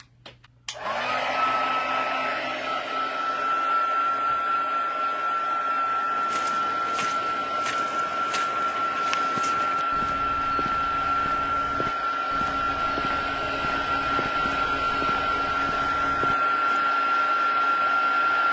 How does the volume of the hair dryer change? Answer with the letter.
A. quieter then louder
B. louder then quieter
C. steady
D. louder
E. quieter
C.